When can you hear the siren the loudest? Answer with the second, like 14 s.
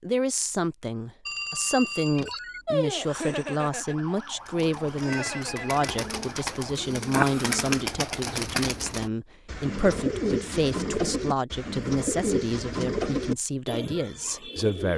3 s.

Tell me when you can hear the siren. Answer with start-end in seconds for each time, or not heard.
2.6-6.9.